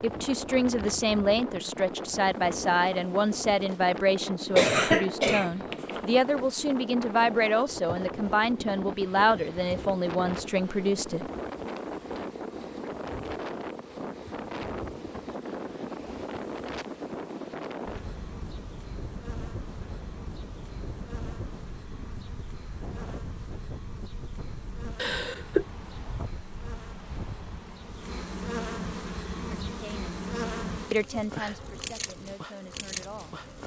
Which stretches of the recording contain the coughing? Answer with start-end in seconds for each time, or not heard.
4.5-6.0, 24.9-25.6.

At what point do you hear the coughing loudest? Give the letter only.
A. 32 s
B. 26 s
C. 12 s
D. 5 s
D.